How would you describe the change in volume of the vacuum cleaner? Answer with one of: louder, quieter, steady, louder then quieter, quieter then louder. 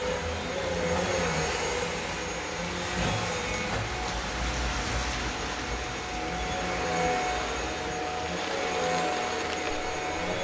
quieter then louder.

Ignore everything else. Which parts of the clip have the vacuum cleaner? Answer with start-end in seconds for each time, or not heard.
0.0-10.4.